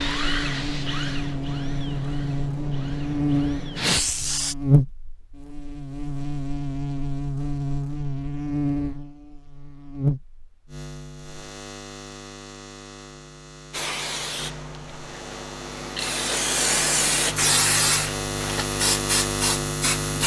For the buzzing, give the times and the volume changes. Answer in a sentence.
You can hear the buzzing from 0.0 to 20.2 s, getting quieter then louder.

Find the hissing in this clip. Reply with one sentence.
The hissing can be heard from 0.0 to 4.5 s and from 13.7 to 20.2 s.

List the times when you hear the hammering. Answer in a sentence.
The hammering can't be heard in this clip.